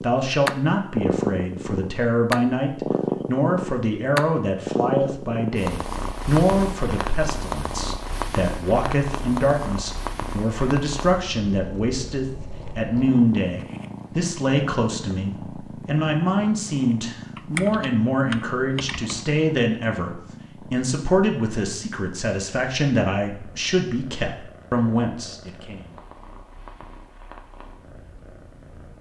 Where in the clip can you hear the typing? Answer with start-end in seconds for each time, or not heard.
17.4-19.2.